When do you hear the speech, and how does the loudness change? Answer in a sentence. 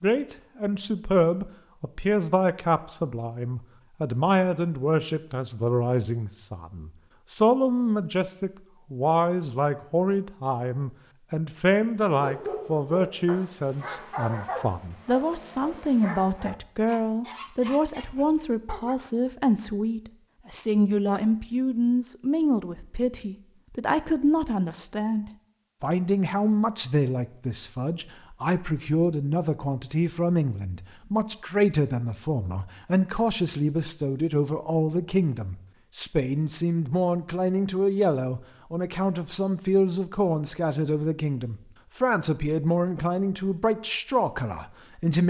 You can hear the speech from 0.0 to 45.2 s, at a steady volume.